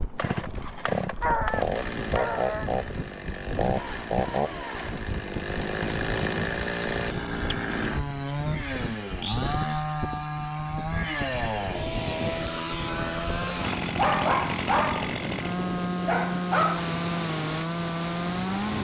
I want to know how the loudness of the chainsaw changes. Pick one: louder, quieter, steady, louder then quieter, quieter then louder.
steady.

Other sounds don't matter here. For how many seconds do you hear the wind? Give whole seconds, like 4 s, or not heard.
19 s.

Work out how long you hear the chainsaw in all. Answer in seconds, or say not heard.
19 s.